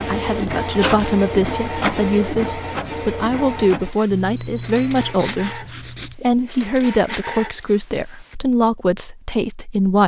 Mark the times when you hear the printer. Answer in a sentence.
You can hear the printer from 0.0 to 8.3 s.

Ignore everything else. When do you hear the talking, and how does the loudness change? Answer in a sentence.
You can hear the talking from 0.1 to 10.0 s, at a steady volume.